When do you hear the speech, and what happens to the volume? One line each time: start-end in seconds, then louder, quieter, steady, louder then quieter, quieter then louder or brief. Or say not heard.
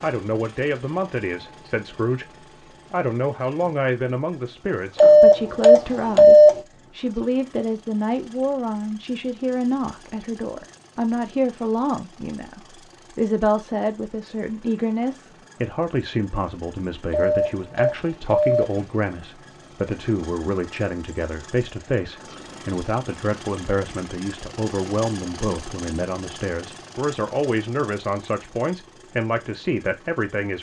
0.0-30.5 steady.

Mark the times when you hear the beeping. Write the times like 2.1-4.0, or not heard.
5.0-6.6, 17.1-18.8.